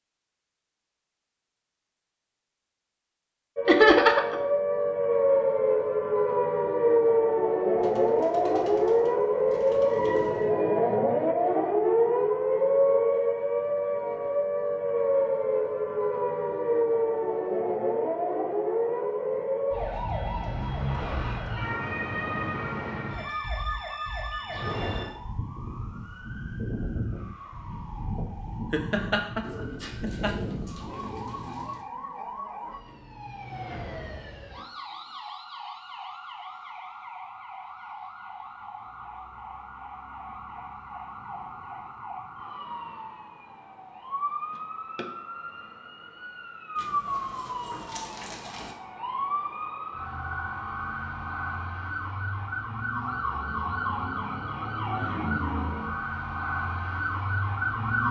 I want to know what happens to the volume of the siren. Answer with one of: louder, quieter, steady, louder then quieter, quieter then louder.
quieter then louder.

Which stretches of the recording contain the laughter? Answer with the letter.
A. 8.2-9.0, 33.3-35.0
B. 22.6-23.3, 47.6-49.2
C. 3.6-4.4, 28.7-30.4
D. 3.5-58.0
C.